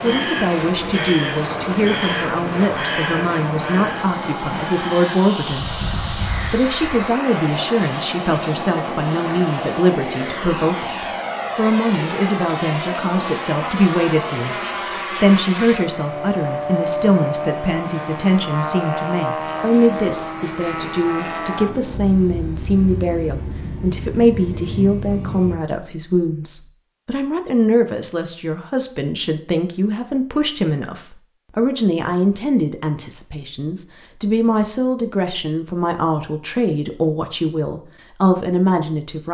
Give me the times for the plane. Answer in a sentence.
The plane can be heard from 0.0 to 25.6 s.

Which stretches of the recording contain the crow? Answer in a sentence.
You can hear the crow from 0.0 to 7.1 s.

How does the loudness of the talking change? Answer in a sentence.
The loudness of the talking stays about the same.